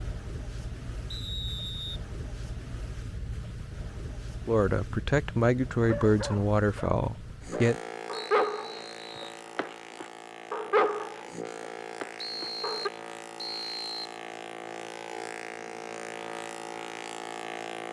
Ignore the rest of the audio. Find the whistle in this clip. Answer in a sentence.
You can hear the whistle from 1.1 to 2.0 s, from 8.1 to 9.4 s and from 12.2 to 14.2 s.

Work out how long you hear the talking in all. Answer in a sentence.
You can hear the talking for 3 seconds altogether.